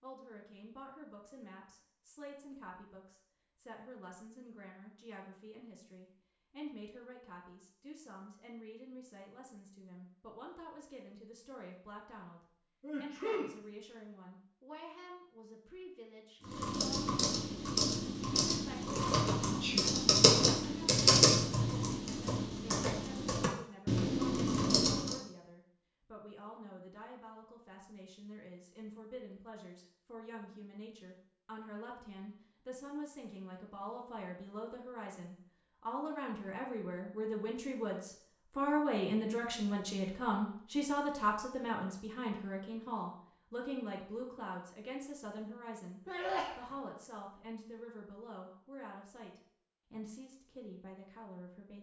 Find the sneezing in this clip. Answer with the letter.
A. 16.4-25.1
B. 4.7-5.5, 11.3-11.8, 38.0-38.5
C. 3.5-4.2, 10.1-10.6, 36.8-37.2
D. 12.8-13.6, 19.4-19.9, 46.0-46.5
D.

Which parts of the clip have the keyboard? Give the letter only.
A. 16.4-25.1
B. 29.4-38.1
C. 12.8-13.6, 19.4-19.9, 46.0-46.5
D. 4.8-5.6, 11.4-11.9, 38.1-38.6
A.